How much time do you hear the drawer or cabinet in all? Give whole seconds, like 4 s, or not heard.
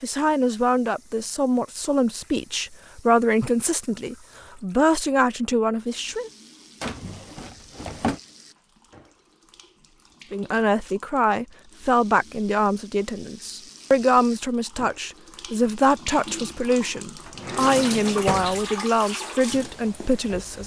3 s.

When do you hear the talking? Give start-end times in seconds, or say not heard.
0.0-6.3, 10.3-20.6.